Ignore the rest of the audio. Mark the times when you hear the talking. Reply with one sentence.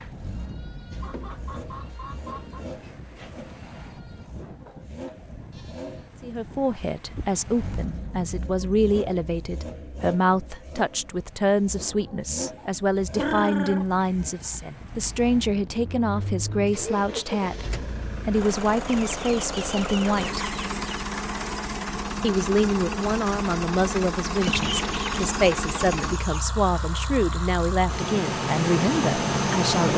You can hear the talking from 6.2 to 17.6 s, from 18.2 to 20.5 s and from 22.2 to 29.9 s.